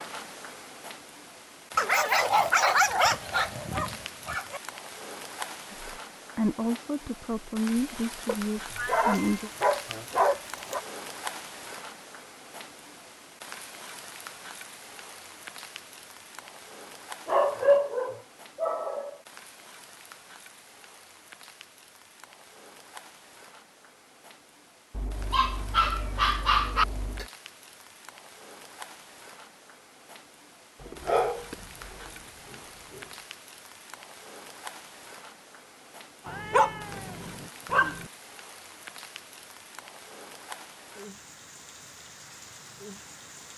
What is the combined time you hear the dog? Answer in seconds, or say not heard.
12 s.